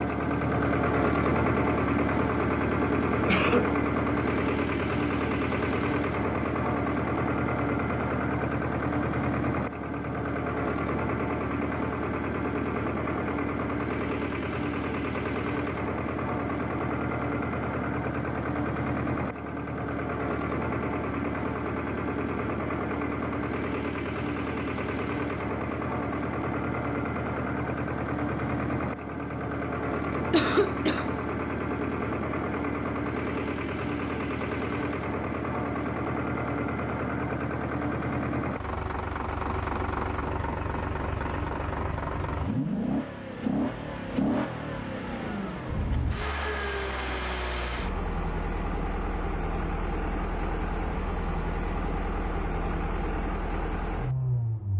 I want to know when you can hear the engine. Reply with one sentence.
You can hear the engine from 0.0 to 54.7 s.